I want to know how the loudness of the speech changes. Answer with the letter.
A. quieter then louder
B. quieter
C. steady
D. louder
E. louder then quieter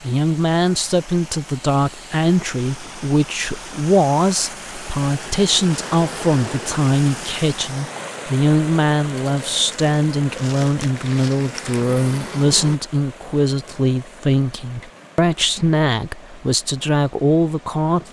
C.